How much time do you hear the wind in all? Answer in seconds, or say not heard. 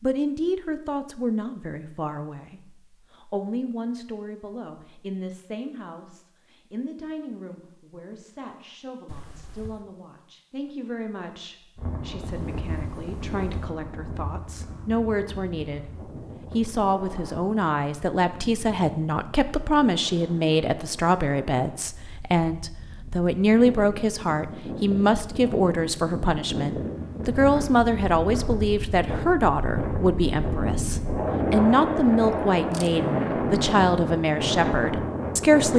24 s.